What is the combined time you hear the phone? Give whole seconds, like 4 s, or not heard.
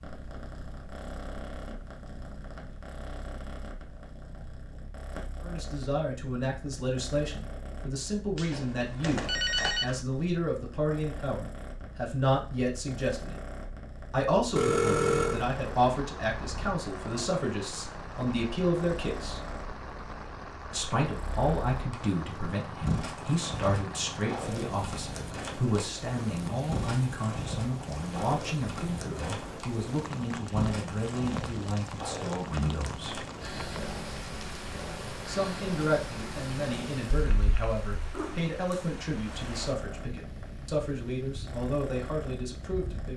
3 s.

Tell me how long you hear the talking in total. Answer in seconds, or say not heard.
34 s.